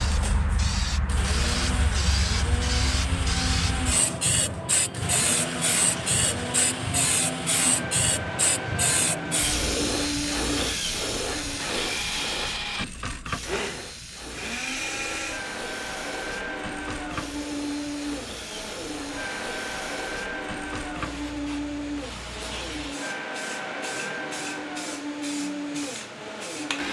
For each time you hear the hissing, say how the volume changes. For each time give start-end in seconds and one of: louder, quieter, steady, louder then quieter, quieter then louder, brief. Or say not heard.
0.0-26.8 quieter.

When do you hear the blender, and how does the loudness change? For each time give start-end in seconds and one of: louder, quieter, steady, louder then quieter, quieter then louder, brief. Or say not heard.
0.0-26.8 steady.